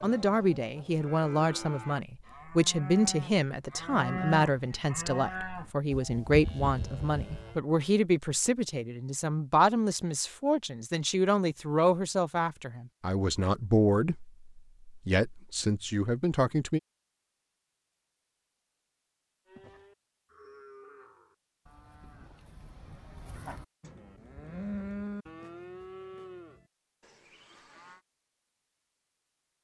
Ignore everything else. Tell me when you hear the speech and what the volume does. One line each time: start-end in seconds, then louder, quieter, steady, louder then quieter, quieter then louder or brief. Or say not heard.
0.0-16.8 steady.